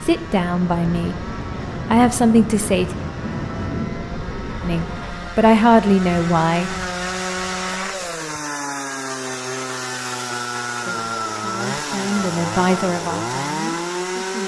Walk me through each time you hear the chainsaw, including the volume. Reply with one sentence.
You can hear the chainsaw from 0.0 to 14.4 s, getting louder.